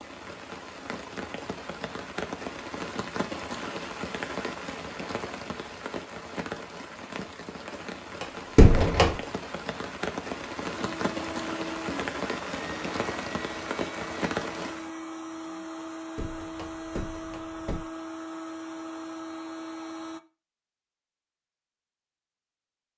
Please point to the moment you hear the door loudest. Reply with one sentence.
The loudest moment of the door is at 9 seconds.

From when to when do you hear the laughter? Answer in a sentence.
You can't hear the laughter here.